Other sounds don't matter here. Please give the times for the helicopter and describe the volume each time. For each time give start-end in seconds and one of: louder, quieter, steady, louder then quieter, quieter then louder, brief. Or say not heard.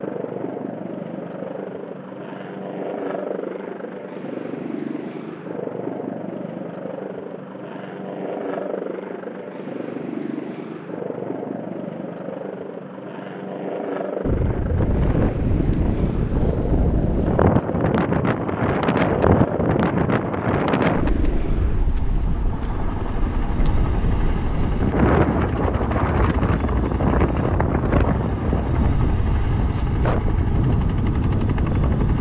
0.0-32.1 steady.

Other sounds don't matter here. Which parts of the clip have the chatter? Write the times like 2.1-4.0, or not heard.
not heard.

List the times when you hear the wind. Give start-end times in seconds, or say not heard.
14.2-32.1.